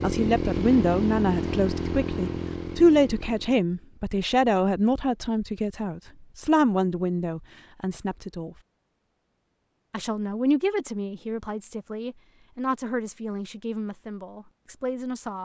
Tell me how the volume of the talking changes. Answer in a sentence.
The loudness of the talking goes down.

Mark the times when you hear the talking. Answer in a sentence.
The talking can be heard from 0.0 to 8.6 s and from 9.9 to 15.4 s.